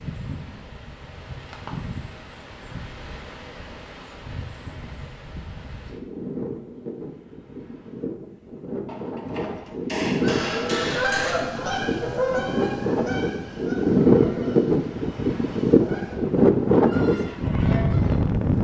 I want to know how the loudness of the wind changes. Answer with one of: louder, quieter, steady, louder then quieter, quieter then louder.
louder.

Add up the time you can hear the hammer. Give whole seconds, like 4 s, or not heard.
3 s.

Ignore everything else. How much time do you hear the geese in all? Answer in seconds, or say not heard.
8 s.